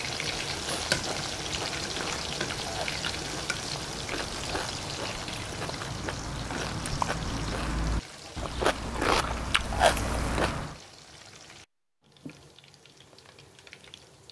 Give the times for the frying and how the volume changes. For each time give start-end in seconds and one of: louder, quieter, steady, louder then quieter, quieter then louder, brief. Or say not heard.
0.0-14.2 quieter.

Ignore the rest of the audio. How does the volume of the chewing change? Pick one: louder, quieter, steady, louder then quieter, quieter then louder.
louder.